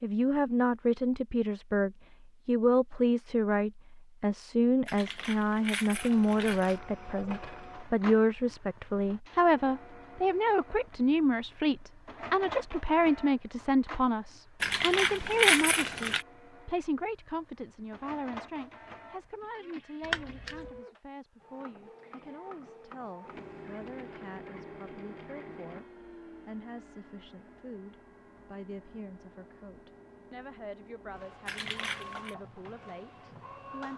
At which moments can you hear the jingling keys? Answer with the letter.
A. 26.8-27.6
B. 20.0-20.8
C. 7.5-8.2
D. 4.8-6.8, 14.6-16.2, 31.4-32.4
D.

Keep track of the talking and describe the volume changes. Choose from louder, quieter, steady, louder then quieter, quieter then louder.
quieter.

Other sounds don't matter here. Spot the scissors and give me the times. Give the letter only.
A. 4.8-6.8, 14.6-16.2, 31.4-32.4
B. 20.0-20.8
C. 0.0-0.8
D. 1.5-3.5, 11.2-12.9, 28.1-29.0
B.